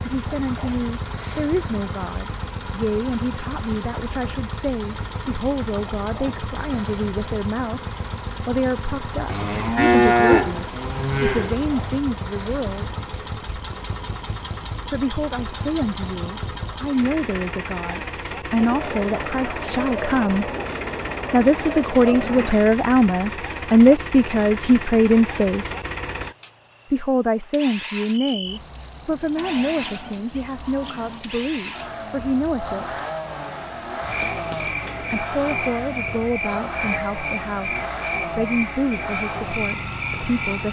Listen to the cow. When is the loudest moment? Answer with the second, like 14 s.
10 s.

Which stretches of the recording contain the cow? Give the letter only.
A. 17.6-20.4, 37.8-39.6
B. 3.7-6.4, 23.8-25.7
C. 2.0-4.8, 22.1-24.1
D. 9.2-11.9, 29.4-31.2
D.